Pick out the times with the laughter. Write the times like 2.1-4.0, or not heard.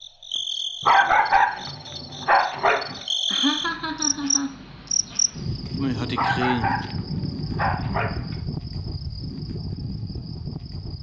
3.2-4.5.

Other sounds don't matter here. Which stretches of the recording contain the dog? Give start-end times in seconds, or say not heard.
0.8-3.0, 6.2-8.3.